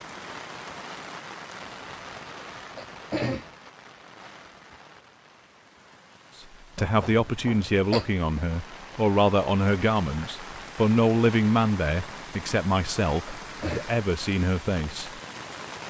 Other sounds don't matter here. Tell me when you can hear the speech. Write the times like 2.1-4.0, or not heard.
6.8-15.2.